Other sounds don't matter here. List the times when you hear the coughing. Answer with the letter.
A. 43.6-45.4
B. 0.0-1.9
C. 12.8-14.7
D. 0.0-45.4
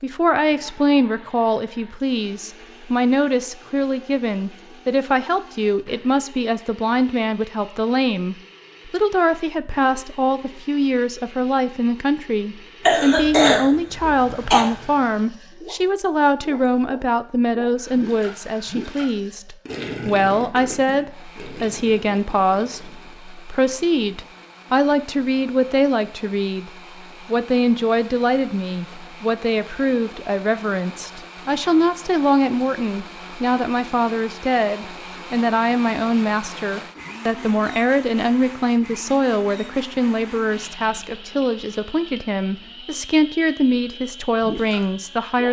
C.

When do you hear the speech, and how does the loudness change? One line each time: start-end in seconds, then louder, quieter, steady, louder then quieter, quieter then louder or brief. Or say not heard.
0.0-45.4 steady.